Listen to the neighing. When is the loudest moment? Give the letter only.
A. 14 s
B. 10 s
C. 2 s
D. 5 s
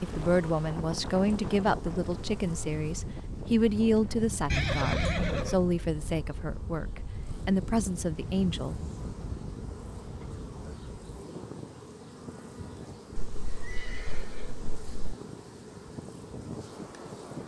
D.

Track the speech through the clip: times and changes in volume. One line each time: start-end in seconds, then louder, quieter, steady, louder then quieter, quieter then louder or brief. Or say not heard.
0.0-8.8 steady.